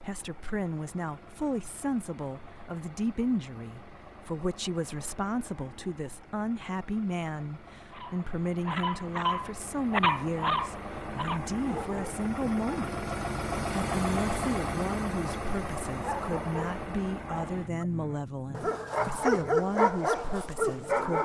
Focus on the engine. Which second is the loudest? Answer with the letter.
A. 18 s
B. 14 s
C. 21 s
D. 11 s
B.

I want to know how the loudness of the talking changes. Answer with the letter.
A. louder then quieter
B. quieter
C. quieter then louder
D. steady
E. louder
D.